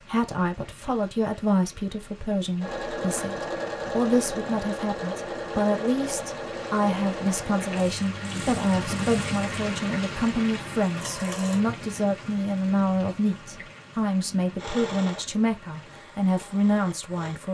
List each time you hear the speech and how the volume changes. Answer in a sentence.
You can hear the speech from 0.1 to 17.5 s, at a steady volume.